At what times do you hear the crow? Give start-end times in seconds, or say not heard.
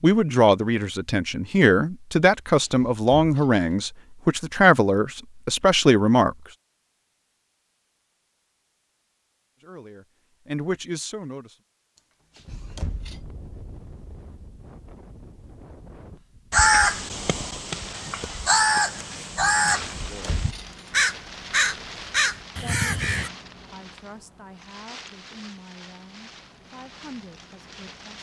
16.5-23.3.